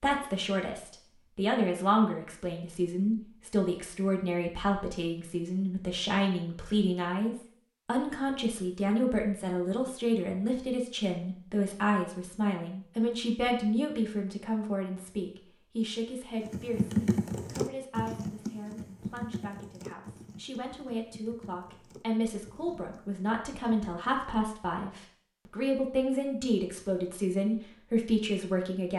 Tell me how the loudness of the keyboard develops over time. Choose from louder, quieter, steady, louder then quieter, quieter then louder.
quieter.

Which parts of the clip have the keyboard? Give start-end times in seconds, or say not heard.
16.4-24.4.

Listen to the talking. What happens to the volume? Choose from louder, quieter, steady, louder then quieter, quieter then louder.
quieter then louder.